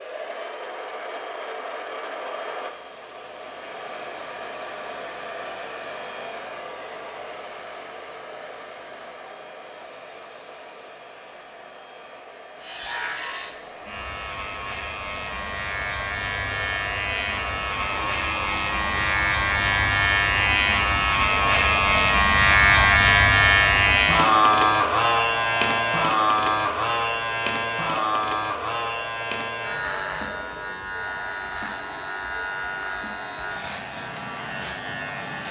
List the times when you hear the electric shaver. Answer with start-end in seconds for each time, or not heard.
12.6-35.4.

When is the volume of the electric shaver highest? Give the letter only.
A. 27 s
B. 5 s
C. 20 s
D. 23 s
D.